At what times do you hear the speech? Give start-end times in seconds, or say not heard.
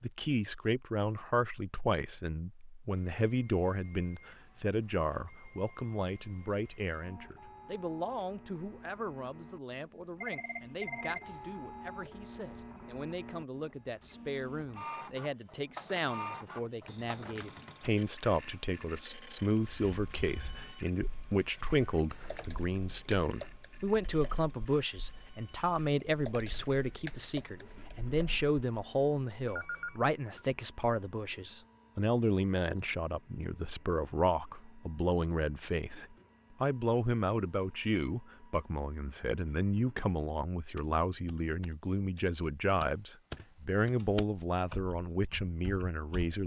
0.0-46.4.